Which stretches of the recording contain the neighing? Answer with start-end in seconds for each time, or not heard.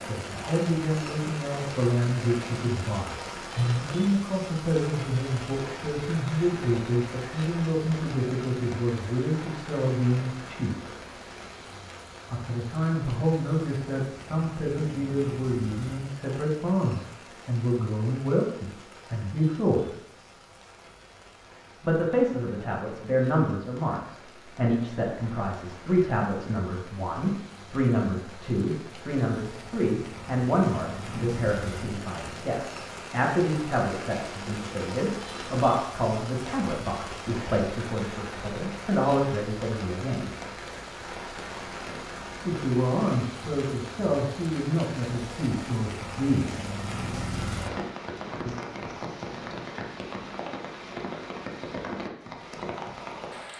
not heard.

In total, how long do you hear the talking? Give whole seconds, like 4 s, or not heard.
41 s.